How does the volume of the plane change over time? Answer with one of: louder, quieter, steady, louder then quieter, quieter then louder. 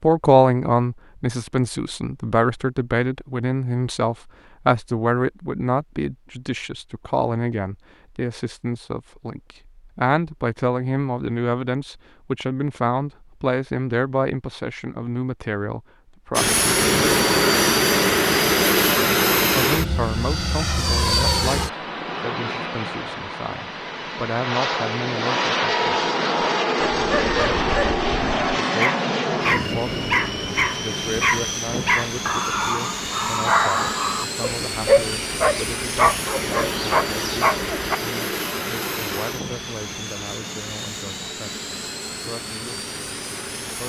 quieter.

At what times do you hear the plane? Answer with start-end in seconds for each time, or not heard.
16.4-43.8.